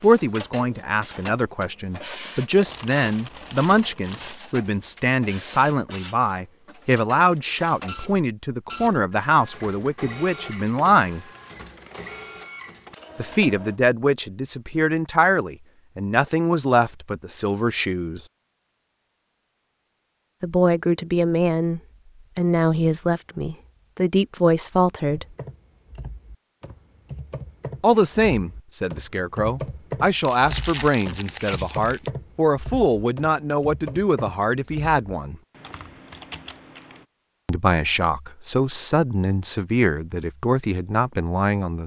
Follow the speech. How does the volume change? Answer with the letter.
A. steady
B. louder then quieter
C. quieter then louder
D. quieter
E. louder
A.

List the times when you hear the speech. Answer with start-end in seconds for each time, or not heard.
0.0-11.2, 13.2-18.2, 20.4-25.2, 27.8-35.4, 37.5-41.8.